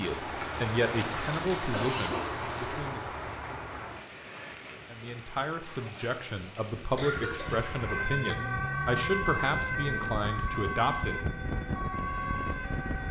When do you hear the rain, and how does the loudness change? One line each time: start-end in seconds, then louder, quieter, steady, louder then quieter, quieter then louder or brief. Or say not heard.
0.0-8.1 quieter.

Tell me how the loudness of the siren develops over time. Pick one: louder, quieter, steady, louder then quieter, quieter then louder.
steady.